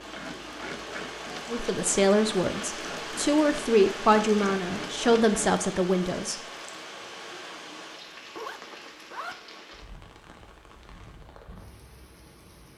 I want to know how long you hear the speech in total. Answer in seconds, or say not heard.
5 s.